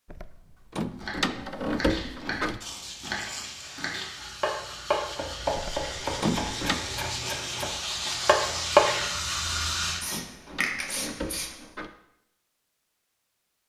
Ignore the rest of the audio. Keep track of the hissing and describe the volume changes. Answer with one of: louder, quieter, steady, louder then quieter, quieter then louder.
louder.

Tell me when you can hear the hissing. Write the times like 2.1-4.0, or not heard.
2.6-11.5.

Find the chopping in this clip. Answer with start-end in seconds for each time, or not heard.
0.9-8.9.